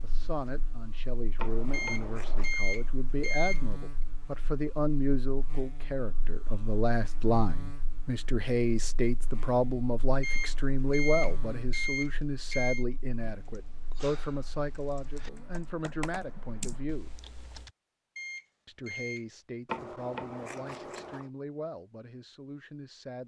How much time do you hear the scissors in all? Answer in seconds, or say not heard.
3 s.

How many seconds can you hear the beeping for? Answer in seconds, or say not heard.
6 s.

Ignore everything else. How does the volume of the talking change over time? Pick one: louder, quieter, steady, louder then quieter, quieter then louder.
louder then quieter.